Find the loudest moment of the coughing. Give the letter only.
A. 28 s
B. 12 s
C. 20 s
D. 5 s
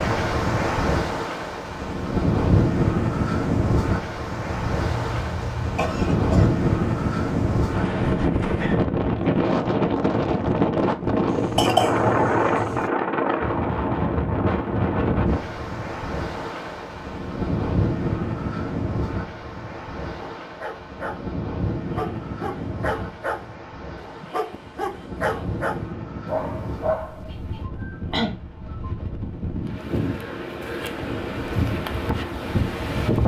B.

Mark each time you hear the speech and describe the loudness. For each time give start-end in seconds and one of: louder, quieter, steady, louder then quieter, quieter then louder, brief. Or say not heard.
not heard.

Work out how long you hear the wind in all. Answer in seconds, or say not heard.
33 s.